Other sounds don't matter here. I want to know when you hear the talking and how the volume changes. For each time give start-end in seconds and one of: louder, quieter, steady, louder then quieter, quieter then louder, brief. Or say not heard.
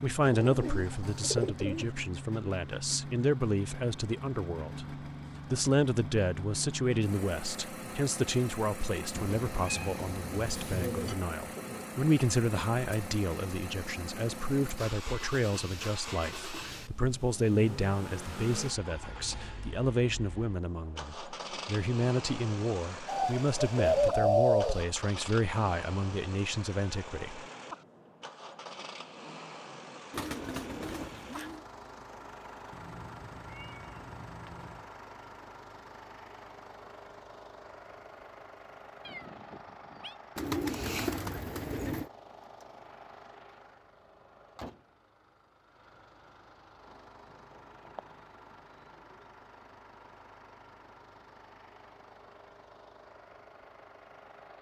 0.0-27.4 steady.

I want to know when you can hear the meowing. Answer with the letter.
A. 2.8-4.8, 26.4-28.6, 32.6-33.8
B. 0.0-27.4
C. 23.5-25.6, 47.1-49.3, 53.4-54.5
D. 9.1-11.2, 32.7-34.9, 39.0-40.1
D.